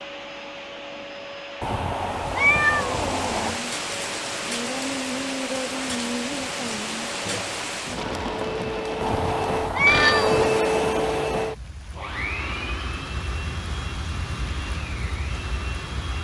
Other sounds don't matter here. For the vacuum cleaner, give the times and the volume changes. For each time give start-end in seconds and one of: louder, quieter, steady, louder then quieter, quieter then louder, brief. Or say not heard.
0.0-16.1 louder then quieter.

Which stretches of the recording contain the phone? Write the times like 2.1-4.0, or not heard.
9.8-10.4.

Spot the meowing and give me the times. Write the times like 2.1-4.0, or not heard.
1.6-3.5, 9.0-10.5.